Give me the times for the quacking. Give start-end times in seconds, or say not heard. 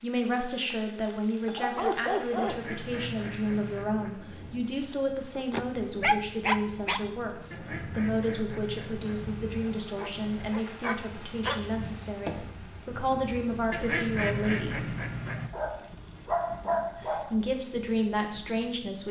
2.5-4.1, 7.5-9.3, 13.7-15.5.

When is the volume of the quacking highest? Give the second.
14 s.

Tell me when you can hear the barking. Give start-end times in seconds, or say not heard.
1.4-2.6, 4.9-7.0, 9.9-11.7, 15.5-17.4.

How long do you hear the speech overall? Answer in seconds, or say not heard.
17 s.